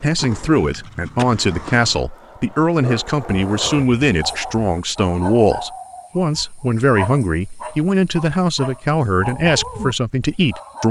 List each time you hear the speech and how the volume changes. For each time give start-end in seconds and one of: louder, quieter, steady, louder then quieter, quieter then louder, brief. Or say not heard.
0.0-10.8 steady.